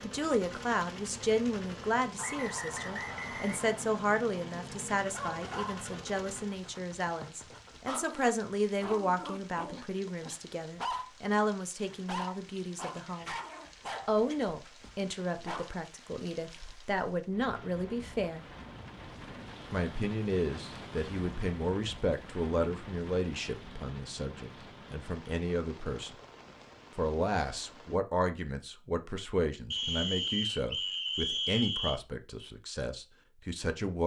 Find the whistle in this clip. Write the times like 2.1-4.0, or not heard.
2.1-3.9, 29.7-32.0.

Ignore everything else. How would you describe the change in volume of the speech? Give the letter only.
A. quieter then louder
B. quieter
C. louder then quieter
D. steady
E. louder
D.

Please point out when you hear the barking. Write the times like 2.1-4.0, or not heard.
5.1-15.7.